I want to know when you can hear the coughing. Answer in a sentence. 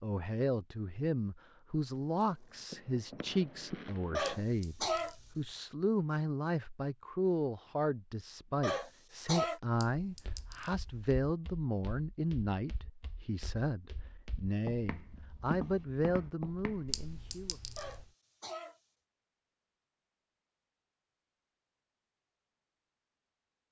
You can hear the coughing from 4.1 to 5.2 s, from 8.6 to 9.6 s and from 17.8 to 18.8 s.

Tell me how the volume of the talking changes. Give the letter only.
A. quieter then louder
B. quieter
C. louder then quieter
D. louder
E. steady
E.